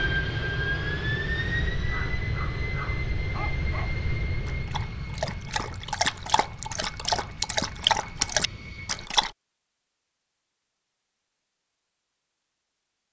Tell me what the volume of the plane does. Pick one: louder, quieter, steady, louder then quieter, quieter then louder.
quieter.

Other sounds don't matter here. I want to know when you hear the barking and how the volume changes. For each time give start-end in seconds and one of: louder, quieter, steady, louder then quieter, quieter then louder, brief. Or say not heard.
1.8-9.3 louder.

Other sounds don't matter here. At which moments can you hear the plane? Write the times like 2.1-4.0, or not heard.
0.0-9.1.